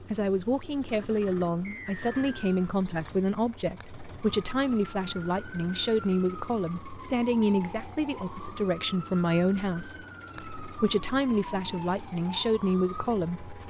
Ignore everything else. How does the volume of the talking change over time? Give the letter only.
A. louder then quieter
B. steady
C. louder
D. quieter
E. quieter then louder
B.